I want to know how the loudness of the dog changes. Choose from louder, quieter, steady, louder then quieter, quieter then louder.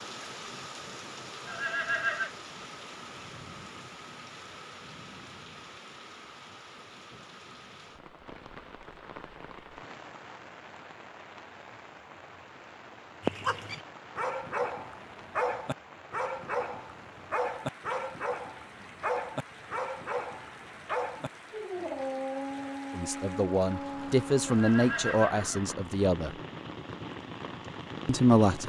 steady.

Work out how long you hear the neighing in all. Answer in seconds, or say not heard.
2 s.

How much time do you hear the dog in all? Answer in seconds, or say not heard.
11 s.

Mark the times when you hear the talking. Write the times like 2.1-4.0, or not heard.
22.9-26.3, 28.1-28.6.